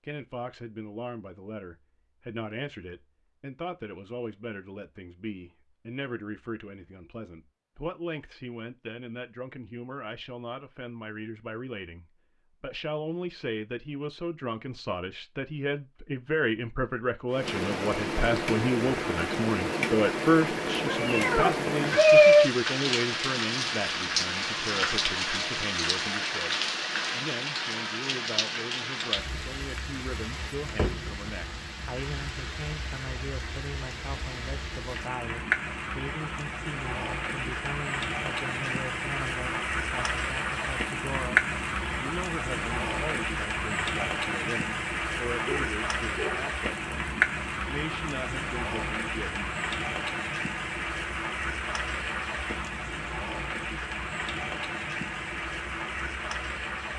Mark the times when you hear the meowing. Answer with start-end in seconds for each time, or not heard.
20.9-22.4.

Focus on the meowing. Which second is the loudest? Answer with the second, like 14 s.
22 s.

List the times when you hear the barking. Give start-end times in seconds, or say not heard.
45.5-46.5.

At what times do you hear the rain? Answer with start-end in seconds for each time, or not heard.
17.3-56.9.